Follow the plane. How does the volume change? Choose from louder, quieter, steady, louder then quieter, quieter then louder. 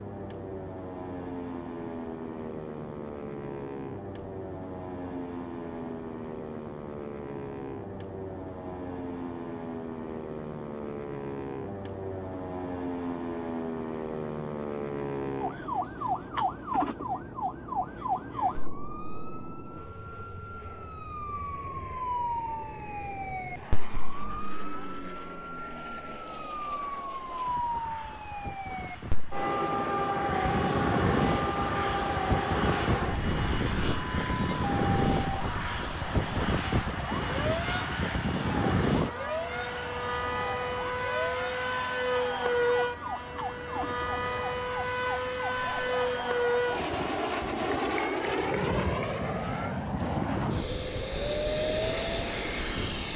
louder.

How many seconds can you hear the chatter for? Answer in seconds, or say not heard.
not heard.